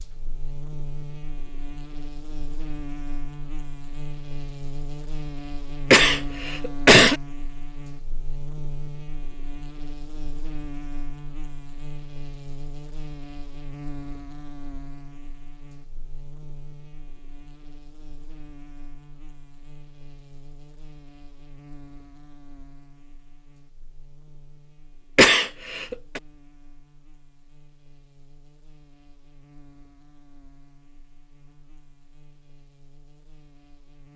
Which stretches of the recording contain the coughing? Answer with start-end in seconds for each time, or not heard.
5.9-7.2, 25.1-26.2.